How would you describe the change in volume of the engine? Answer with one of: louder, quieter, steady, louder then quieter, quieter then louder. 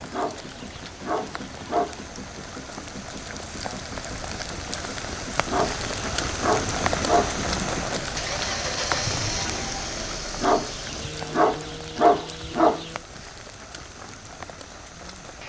louder then quieter.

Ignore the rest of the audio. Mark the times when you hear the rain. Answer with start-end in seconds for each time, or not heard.
0.0-15.4.